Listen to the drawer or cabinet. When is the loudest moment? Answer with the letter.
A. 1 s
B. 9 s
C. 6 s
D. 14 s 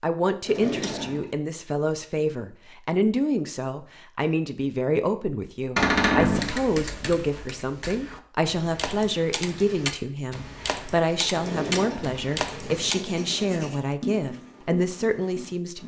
C.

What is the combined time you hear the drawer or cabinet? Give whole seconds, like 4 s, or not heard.
3 s.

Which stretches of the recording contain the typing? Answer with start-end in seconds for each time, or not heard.
6.3-12.9.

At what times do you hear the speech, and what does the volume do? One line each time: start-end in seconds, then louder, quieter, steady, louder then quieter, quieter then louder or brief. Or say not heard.
0.0-15.8 steady.